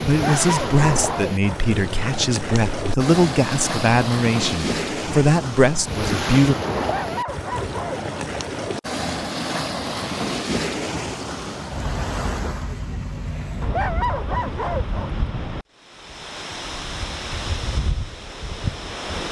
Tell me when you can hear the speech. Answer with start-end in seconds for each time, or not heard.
0.1-6.5.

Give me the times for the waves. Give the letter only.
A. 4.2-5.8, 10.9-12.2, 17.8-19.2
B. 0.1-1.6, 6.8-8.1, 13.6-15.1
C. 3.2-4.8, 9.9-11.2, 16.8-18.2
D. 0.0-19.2
D.